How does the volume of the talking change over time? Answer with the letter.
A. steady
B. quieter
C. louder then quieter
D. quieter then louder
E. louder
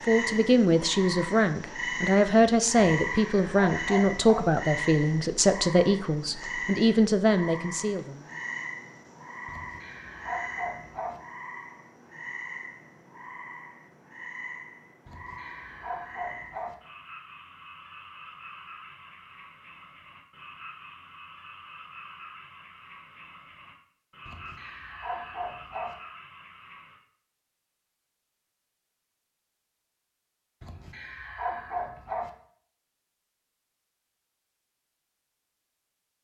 A.